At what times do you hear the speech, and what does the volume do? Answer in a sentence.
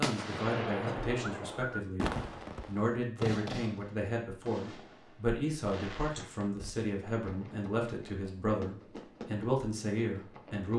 You can hear the speech from 0.0 to 10.7 s, at a steady volume.